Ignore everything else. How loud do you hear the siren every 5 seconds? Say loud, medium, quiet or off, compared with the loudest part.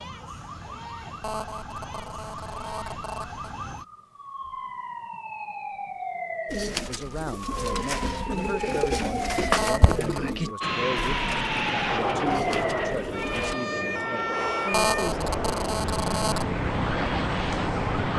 medium, loud, loud, loud.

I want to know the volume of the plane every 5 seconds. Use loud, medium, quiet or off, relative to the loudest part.
off, off, loud, loud.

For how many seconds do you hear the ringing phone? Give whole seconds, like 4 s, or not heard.
5 s.